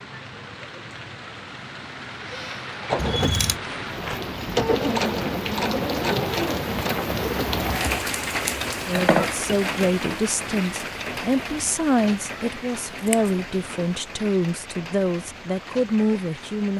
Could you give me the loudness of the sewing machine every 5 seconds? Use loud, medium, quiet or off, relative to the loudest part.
loud, loud, off, off.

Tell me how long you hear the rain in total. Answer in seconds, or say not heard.
17 s.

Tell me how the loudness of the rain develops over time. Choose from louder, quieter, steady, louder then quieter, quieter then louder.
louder then quieter.